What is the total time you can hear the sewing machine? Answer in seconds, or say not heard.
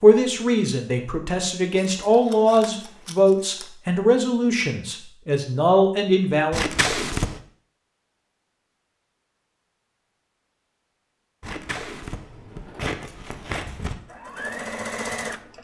3 s.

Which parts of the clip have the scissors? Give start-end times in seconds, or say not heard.
1.7-3.7, 6.5-7.4, 11.4-13.9.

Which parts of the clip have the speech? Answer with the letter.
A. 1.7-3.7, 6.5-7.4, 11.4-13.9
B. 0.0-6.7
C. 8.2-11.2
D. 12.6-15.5
B.